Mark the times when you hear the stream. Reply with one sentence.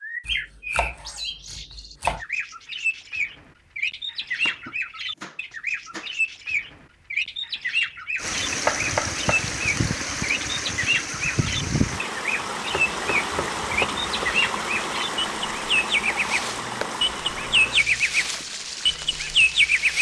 You can hear the stream from 8.2 to 19.9 s.